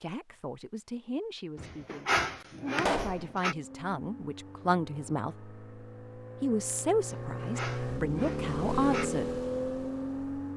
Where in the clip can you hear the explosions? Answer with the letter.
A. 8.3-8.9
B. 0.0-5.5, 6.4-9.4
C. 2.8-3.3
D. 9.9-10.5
C.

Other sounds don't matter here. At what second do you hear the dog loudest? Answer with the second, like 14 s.
2 s.